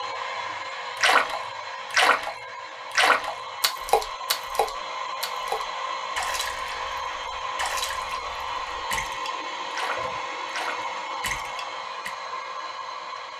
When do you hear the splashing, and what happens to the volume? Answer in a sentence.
You can hear the splashing briefly from 0.9 to 2.3 s; and from 2.9 to 12.1 s, getting quieter.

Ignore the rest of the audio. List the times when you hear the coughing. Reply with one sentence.
You can't hear the coughing here.